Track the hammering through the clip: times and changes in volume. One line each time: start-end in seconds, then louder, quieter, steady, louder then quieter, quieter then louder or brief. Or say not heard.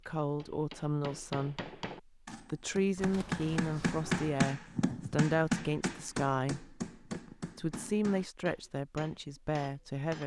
0.0-10.2 louder then quieter.